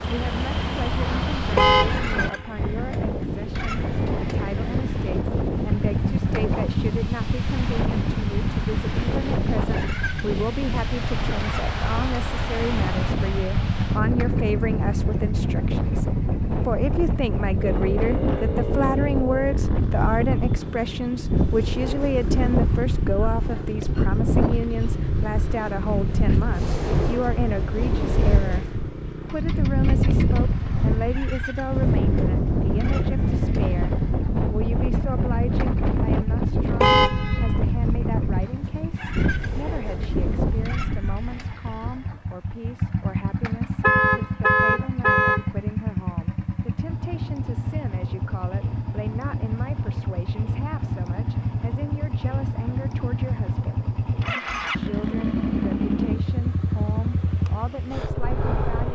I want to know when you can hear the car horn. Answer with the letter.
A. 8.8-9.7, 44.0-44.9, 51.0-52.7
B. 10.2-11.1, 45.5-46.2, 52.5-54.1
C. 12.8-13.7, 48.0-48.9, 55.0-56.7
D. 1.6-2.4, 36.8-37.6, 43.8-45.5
D.